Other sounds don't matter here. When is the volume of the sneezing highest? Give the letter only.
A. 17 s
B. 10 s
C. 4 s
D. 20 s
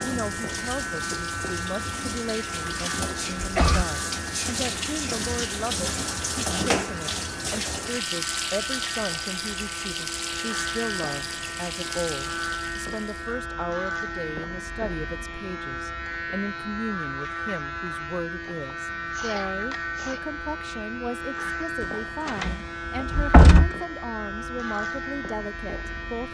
C.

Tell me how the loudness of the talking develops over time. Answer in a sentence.
The volume of the talking stays about the same.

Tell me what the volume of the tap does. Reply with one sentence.
The loudness of the tap goes up, then down.